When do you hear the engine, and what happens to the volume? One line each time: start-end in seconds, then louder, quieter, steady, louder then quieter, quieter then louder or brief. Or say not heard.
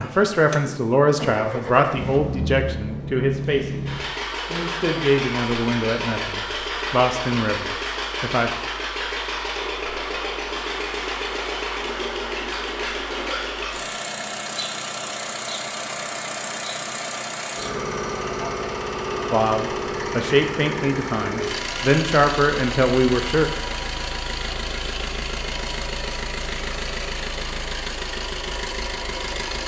0.0-29.6 steady.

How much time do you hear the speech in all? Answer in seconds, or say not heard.
13 s.